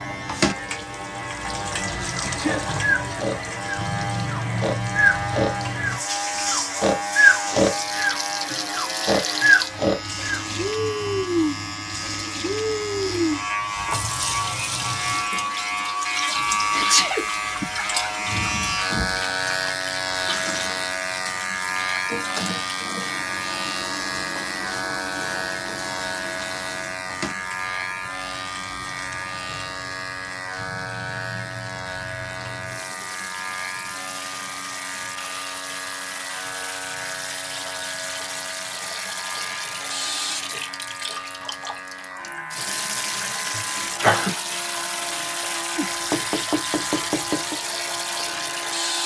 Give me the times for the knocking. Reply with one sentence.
You can hear the knocking from 45.8 to 47.5 s.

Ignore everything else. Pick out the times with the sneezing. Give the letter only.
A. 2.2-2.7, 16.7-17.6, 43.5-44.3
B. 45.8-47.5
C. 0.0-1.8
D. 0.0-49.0
A.